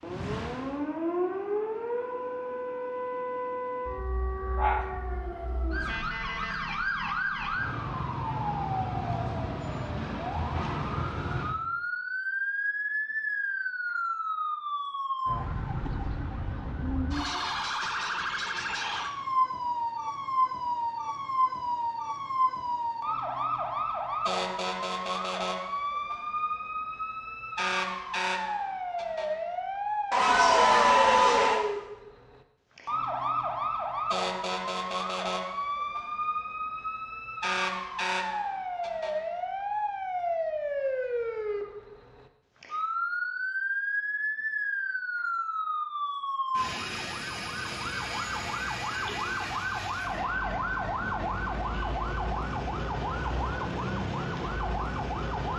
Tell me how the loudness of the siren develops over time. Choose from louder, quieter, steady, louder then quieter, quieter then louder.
steady.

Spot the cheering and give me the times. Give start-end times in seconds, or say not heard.
30.1-31.6.